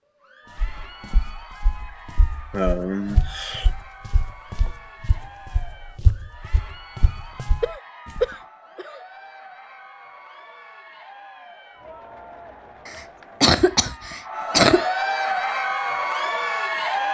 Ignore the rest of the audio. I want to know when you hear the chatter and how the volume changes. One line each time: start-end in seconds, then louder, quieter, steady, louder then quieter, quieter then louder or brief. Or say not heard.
0.1-17.0 louder.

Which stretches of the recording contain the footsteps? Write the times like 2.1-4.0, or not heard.
0.6-8.2.